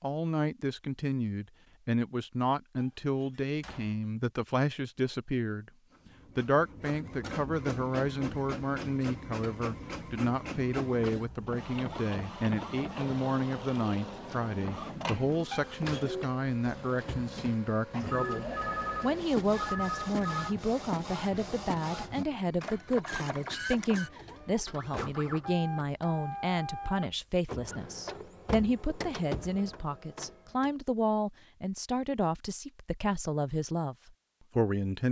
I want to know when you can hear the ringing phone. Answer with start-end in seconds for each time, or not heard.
18.1-20.6.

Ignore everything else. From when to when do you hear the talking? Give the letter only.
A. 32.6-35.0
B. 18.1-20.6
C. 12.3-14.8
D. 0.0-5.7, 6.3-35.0
D.